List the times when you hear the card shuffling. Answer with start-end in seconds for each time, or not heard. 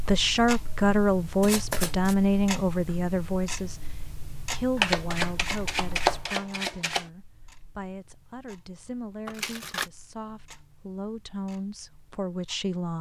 1.4-2.1, 4.8-7.0, 9.2-9.9.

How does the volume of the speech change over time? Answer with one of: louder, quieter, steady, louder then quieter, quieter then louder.
quieter then louder.